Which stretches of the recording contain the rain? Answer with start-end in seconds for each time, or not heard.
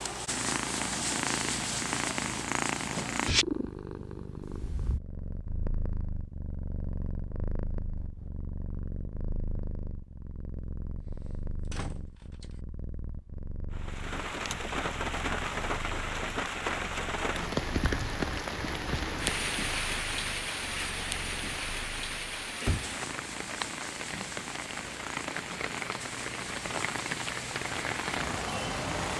13.7-29.1.